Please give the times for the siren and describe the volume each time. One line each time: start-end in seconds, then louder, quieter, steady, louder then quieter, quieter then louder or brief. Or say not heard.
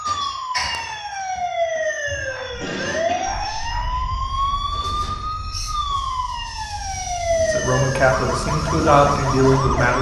0.0-9.9 steady.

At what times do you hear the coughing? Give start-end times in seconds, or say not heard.
2.0-3.5.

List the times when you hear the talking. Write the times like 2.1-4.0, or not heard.
7.4-9.9.